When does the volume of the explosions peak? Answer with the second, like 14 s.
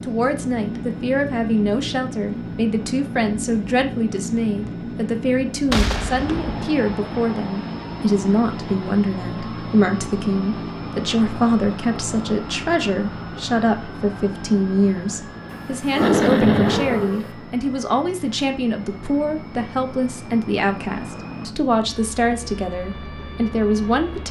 16 s.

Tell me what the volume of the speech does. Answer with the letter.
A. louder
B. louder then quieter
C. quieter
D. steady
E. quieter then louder
D.